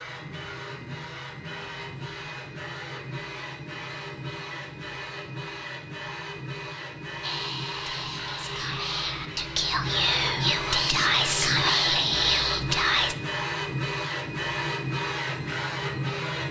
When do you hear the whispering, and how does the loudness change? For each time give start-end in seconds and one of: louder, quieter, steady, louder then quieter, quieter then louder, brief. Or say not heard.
7.2-13.2 louder.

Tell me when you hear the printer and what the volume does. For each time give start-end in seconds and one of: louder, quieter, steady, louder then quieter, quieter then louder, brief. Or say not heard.
0.0-16.4 louder.